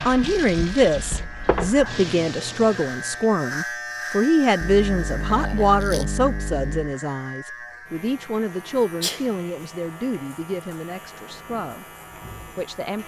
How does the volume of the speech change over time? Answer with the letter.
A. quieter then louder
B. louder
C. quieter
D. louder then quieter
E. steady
C.